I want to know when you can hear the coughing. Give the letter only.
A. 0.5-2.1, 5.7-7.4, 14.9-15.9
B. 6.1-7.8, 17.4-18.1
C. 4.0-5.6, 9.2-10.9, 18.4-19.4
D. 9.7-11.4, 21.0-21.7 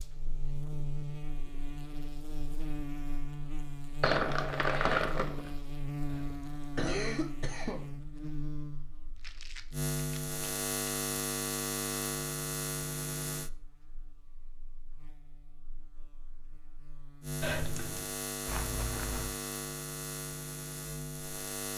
B.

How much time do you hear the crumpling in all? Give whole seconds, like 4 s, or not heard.
4 s.